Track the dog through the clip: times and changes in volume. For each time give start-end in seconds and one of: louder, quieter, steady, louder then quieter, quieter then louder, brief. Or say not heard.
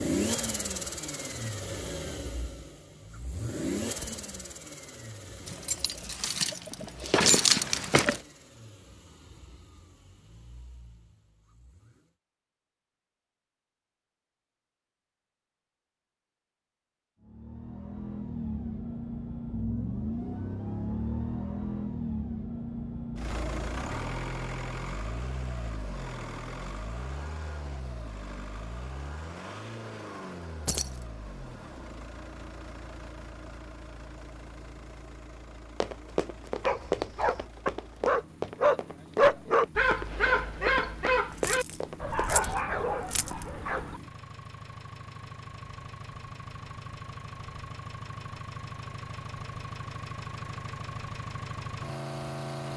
36.6-44.0 louder then quieter.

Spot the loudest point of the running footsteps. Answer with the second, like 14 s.
37 s.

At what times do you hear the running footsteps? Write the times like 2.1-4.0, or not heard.
35.8-42.2.